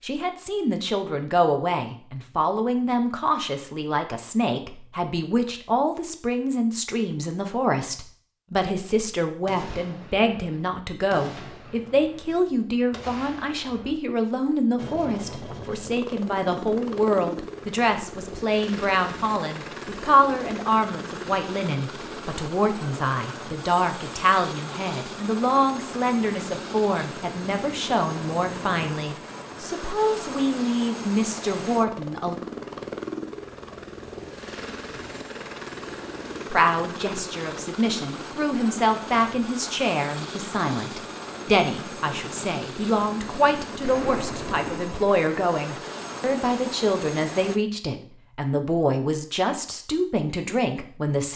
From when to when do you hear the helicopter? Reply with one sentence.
The helicopter can be heard from 14.8 to 47.6 s.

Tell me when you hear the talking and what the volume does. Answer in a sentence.
You can hear the talking from 0.0 to 32.4 s, at a steady volume; and from 36.5 to 51.3 s, at a steady volume.